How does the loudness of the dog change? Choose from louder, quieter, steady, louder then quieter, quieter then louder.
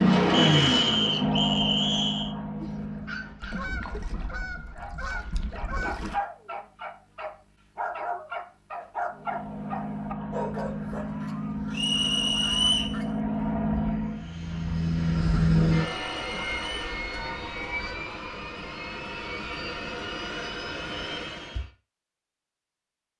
louder.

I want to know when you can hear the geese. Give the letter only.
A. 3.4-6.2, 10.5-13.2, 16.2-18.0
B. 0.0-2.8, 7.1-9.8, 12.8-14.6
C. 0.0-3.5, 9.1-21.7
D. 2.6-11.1
A.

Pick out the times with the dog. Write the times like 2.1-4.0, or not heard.
2.6-11.1.